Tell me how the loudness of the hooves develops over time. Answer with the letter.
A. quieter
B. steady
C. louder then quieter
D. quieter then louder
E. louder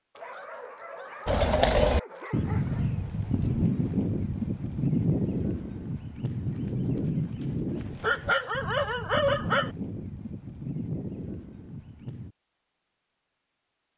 A.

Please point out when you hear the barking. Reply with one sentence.
You can hear the barking from 0.1 to 2.9 s and from 8.0 to 9.8 s.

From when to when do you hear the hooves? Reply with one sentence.
You can hear the hooves from 1.2 to 12.3 s.